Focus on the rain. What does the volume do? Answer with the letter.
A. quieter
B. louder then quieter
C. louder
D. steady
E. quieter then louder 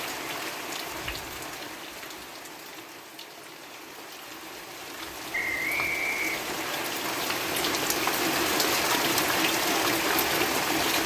E.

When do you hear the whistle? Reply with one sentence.
The whistle can be heard from 5.3 to 6.8 s.